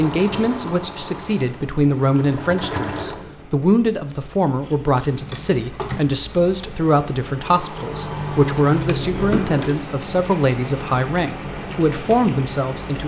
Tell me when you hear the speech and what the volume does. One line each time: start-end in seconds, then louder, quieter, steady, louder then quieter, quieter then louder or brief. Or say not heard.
0.0-13.0 steady.